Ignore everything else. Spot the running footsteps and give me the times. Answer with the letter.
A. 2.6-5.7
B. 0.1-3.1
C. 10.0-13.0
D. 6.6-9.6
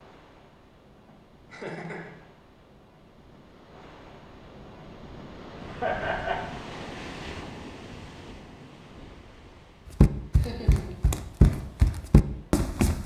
C.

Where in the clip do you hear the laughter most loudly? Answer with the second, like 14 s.
6 s.